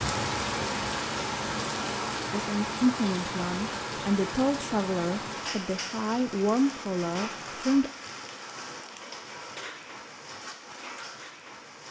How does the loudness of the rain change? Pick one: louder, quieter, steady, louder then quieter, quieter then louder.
quieter.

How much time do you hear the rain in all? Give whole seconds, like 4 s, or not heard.
12 s.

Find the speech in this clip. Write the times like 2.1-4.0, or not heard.
2.3-7.9.